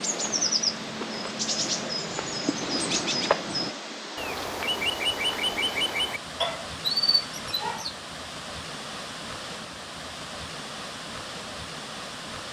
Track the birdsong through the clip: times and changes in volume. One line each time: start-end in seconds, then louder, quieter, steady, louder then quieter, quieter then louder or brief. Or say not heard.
0.0-8.0 steady.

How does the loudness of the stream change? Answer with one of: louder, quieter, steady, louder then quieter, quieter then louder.
steady.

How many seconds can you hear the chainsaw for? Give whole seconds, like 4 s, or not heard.
not heard.